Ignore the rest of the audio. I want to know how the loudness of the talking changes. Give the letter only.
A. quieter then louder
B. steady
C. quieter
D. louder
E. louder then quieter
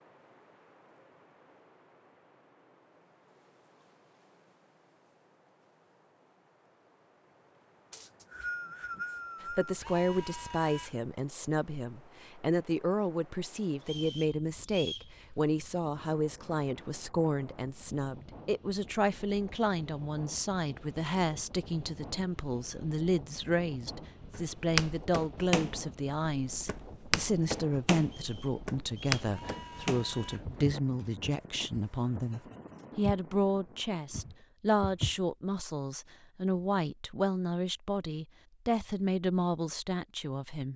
B.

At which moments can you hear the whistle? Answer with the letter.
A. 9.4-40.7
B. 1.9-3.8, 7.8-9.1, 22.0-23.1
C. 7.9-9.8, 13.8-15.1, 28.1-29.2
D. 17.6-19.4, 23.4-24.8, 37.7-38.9
C.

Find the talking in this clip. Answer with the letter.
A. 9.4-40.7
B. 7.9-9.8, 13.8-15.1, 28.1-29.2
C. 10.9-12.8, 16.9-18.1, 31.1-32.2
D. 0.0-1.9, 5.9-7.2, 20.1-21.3
A.